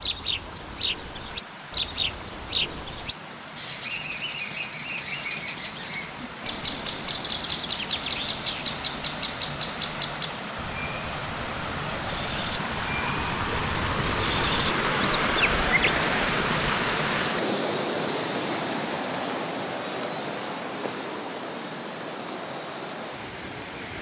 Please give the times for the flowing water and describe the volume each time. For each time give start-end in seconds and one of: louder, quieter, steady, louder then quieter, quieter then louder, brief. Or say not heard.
0.0-23.9 louder then quieter.